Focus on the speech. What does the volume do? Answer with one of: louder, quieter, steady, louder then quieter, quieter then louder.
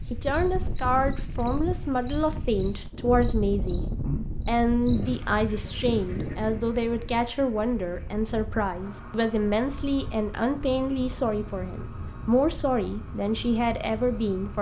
steady.